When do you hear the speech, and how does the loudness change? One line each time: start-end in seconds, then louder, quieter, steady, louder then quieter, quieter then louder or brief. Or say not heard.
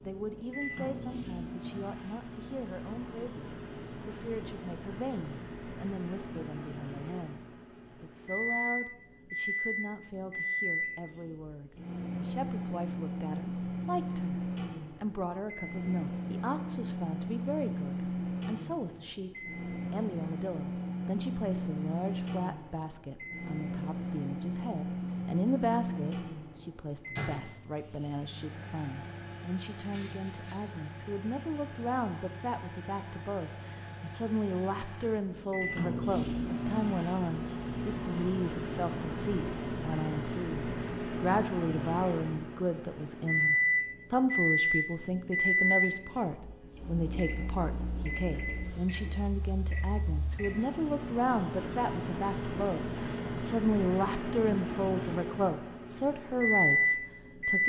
0.0-57.6 louder.